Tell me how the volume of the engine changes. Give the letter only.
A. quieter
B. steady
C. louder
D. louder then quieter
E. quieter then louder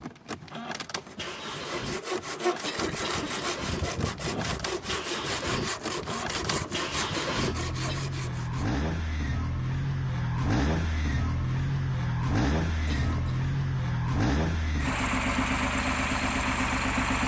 C.